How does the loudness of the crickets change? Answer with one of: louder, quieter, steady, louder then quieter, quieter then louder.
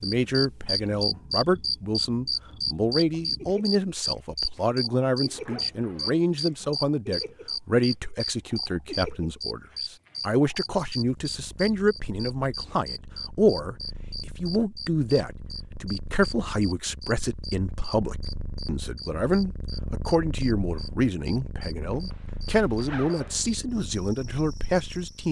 quieter.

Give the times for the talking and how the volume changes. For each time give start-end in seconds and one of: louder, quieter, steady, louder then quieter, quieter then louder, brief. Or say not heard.
0.0-25.2 steady.